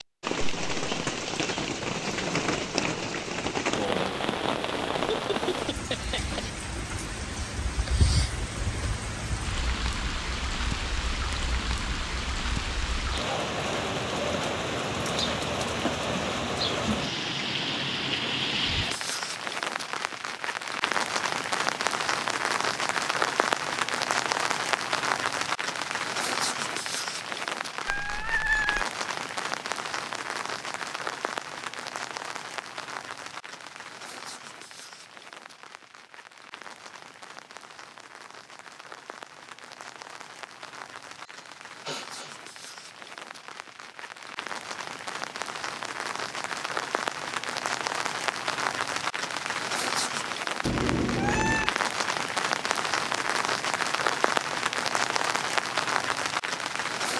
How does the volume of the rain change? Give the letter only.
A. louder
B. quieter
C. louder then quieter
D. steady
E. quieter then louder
E.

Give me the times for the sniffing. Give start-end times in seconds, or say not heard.
41.2-42.3.